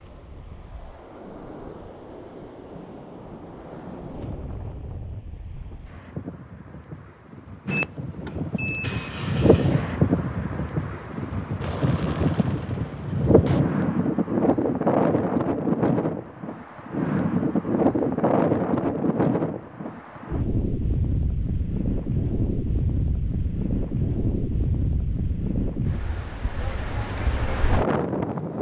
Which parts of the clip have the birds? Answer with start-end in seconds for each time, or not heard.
not heard.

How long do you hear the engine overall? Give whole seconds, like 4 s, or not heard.
2 s.